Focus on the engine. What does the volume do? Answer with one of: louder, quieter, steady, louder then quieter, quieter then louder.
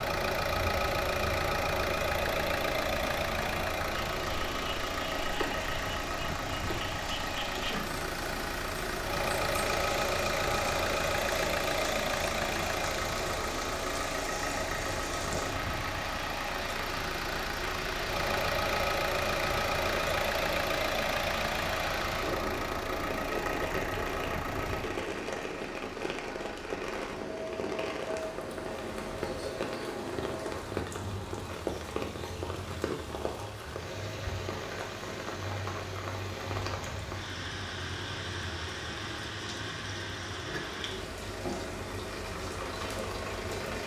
quieter.